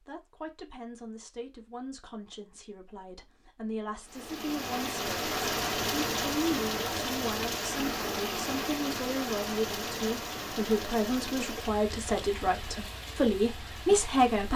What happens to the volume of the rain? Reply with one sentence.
The volume of the rain goes down.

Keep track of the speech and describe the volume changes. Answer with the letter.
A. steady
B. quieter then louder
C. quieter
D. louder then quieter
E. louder
E.